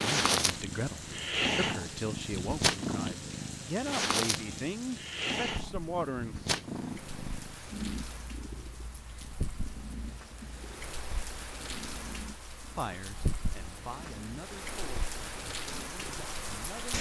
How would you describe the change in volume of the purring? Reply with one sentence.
The volume of the purring goes down.